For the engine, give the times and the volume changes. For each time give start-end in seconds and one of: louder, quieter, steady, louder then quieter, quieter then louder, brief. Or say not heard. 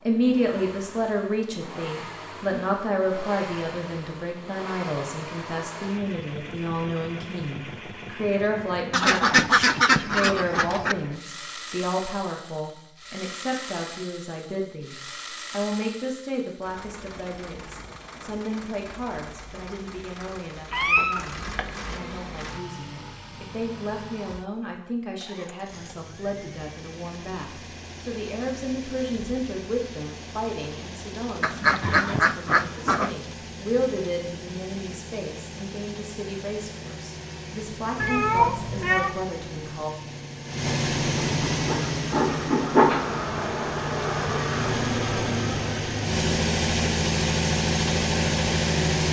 0.0-49.0 louder.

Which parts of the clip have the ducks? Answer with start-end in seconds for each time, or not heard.
8.9-10.9, 31.4-33.1.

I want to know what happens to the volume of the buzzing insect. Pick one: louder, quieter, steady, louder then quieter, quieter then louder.
louder then quieter.